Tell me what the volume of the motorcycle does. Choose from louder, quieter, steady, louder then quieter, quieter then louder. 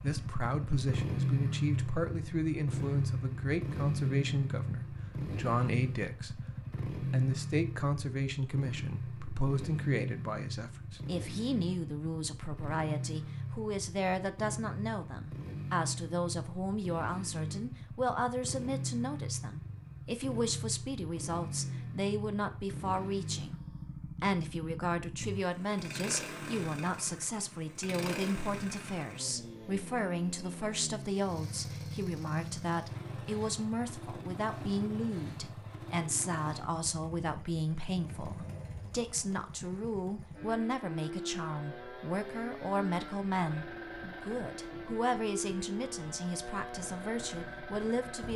quieter.